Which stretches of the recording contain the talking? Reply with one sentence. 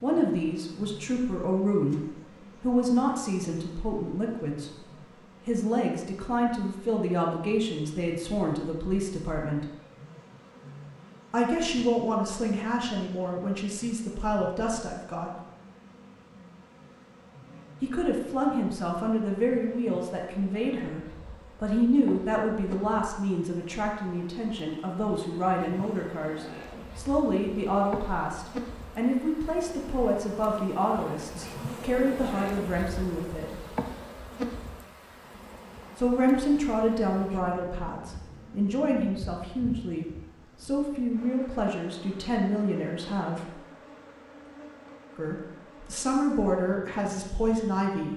You can hear the talking from 0.0 to 9.7 s, from 11.3 to 15.3 s, from 17.8 to 33.6 s, from 36.0 to 43.5 s and from 45.1 to 48.1 s.